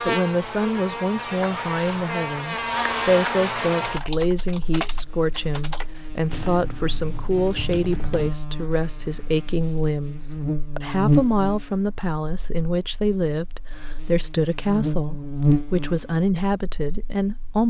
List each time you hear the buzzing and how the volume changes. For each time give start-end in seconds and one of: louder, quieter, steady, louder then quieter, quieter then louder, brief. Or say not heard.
0.0-17.6 quieter then louder.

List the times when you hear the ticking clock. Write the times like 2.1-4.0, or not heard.
not heard.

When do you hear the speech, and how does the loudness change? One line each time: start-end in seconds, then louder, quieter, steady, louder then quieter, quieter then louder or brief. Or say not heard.
0.0-17.6 steady.